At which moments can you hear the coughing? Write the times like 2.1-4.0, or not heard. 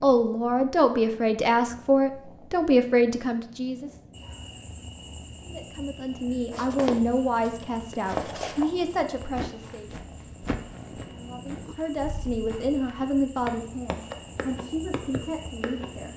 not heard.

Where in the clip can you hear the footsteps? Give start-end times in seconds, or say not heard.
6.5-16.1.